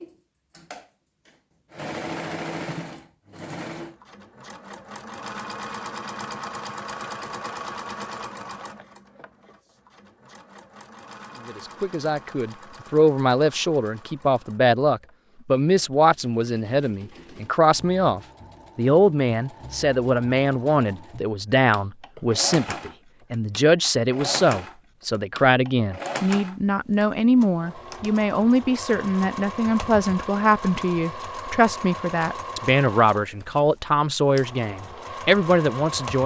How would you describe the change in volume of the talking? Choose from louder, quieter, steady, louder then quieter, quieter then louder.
steady.